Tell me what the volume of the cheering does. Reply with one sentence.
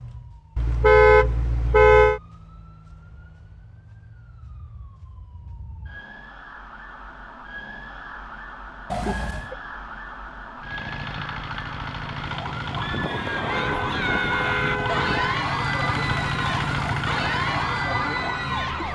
The volume of the cheering stays about the same.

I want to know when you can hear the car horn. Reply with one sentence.
The car horn can be heard from 0.6 to 2.2 s, from 8.9 to 9.6 s and from 13.5 to 15.4 s.